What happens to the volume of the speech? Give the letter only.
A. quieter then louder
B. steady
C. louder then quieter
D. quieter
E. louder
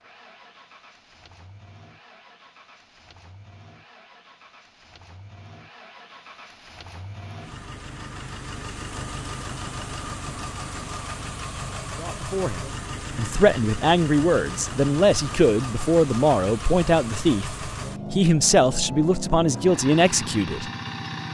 B.